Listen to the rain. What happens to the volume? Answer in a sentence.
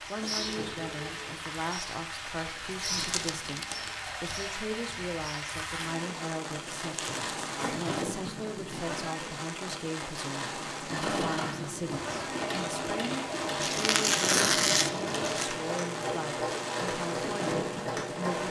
The volume of the rain stays about the same.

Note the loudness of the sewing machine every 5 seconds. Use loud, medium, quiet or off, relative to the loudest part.
medium, off, loud, loud.